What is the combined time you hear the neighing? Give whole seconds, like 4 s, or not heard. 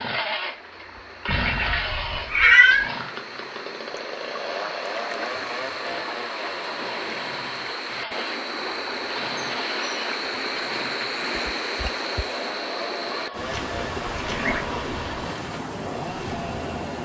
3 s.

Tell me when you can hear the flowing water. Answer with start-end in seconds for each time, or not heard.
0.0-17.0.